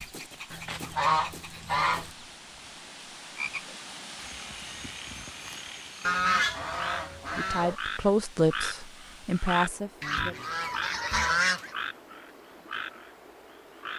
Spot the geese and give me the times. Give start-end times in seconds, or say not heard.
0.5-2.1, 6.0-7.8, 10.0-11.8.